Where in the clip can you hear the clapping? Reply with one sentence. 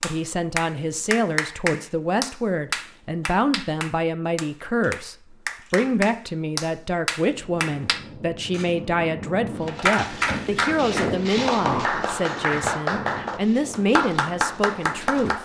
You can hear the clapping from 0.0 to 8.0 s and from 9.8 to 15.3 s.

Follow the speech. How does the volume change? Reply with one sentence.
The loudness of the speech stays about the same.